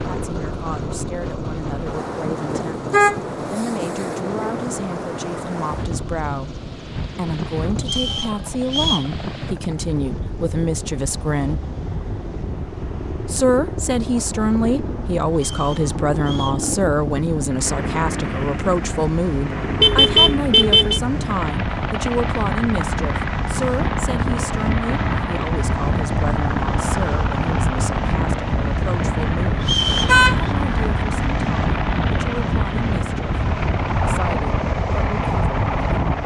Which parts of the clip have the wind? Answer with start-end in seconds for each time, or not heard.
0.0-36.2.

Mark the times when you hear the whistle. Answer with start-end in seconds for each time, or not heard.
7.8-9.1, 15.3-16.6, 29.6-30.5.